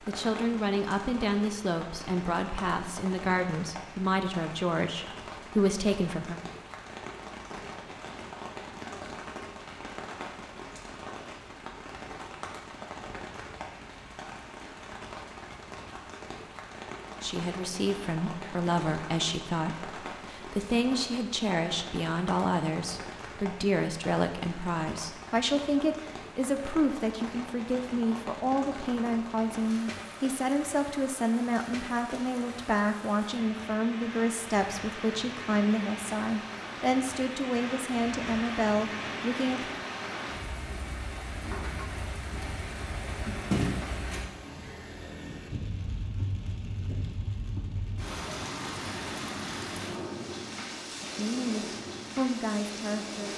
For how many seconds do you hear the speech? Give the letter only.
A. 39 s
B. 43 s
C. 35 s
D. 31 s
D.